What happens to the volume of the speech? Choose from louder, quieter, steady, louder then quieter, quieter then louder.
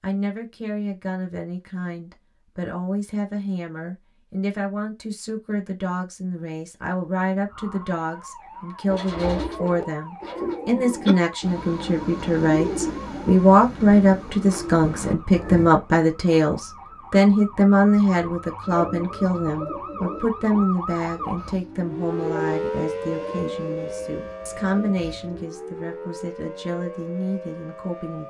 louder then quieter.